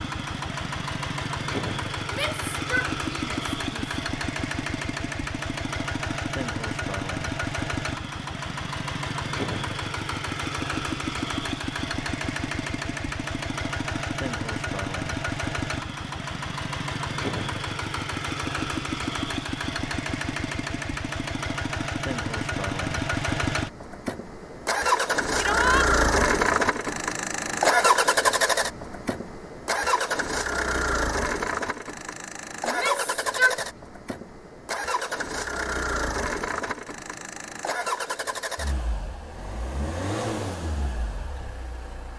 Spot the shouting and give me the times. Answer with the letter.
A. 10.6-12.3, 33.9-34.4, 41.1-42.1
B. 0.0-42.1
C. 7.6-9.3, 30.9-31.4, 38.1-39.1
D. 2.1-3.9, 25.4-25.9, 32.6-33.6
D.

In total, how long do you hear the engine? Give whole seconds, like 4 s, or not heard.
42 s.